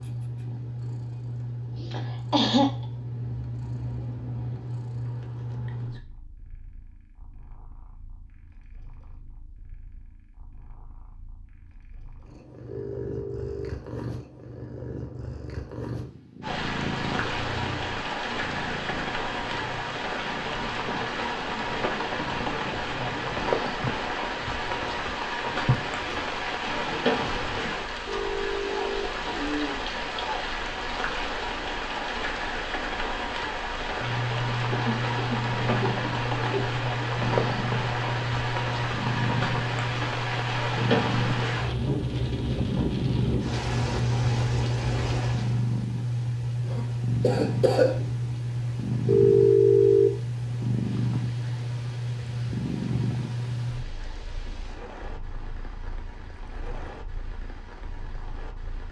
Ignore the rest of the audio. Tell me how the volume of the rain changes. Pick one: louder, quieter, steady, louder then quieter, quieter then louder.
quieter.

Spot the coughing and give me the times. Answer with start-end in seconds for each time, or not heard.
1.8-2.9, 34.7-36.7, 46.6-48.0.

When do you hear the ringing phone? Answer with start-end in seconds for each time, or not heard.
12.7-13.7, 28.1-29.1, 49.0-50.1.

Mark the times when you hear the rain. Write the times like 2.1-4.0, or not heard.
16.4-58.8.